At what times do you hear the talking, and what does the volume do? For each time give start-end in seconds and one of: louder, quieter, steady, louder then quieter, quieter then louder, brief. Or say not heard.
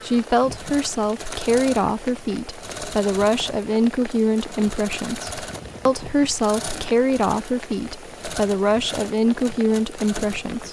0.0-10.6 steady.